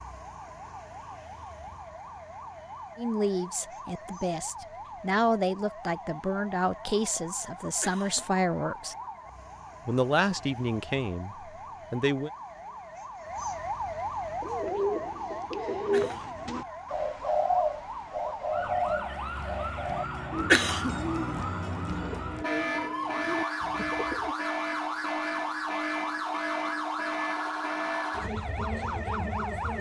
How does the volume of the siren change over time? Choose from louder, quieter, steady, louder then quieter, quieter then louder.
louder.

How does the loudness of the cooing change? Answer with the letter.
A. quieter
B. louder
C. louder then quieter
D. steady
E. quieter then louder
A.